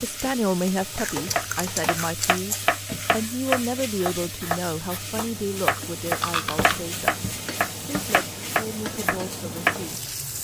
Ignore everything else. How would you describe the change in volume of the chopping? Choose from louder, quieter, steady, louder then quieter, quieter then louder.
steady.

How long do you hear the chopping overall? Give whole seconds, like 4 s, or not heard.
9 s.